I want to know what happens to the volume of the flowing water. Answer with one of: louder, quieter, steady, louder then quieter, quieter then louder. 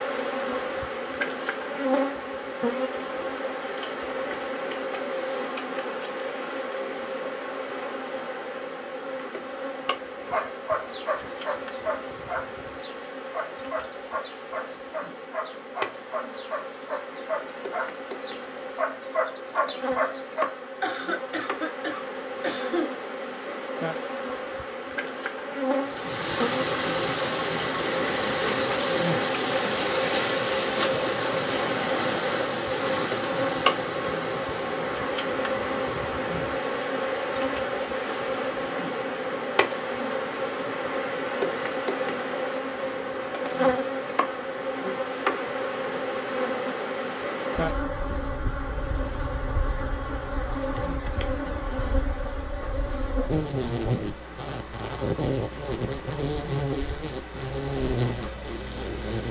quieter.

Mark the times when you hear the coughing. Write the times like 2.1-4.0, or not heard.
20.8-22.9.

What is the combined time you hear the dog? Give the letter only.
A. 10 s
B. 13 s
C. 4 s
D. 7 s
A.